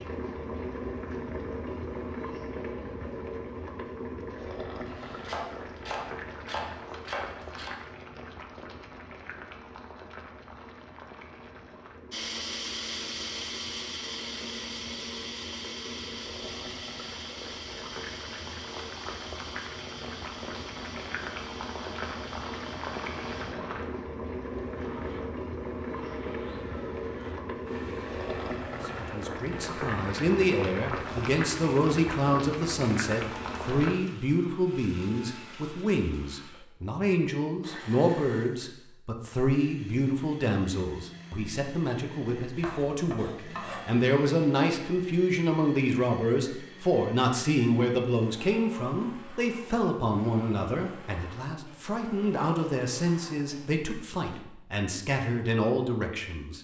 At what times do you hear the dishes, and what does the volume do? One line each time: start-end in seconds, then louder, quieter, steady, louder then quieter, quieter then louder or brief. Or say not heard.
not heard.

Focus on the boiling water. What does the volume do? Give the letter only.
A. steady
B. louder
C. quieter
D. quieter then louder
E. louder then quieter
D.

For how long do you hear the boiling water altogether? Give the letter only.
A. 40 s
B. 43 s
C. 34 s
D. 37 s
C.